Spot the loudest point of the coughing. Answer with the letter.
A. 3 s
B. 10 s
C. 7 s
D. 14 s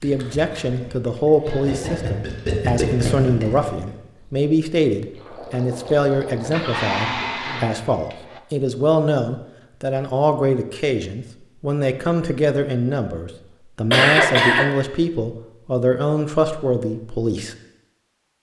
D.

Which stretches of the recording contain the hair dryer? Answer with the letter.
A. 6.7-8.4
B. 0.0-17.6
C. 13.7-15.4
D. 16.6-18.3
A.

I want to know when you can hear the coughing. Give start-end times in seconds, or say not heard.
0.5-2.2, 6.5-7.7, 13.9-14.7.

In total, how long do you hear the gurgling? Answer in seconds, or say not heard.
7 s.